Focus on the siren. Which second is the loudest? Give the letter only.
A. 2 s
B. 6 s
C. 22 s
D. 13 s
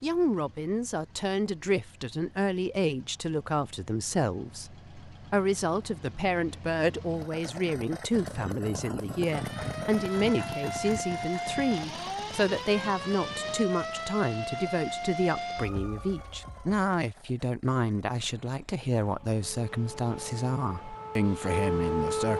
C.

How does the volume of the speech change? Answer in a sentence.
The volume of the speech stays about the same.